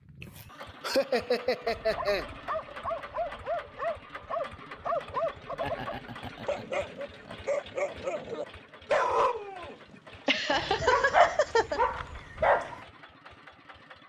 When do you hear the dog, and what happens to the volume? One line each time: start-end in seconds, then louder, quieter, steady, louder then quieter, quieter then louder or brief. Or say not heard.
1.8-9.8 louder
10.3-12.8 brief.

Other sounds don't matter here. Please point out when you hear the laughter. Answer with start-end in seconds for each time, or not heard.
0.2-2.2, 5.6-7.4, 10.2-11.8.